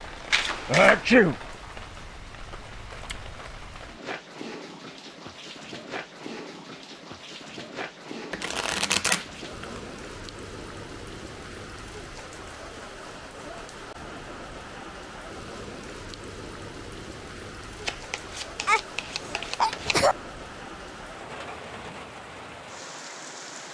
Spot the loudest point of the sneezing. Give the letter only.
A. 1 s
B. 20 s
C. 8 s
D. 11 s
A.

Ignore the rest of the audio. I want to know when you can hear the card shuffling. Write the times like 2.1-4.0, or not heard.
0.3-1.1, 8.3-9.8, 17.9-20.0.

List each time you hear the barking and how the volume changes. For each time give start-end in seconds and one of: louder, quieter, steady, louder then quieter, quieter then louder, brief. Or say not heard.
not heard.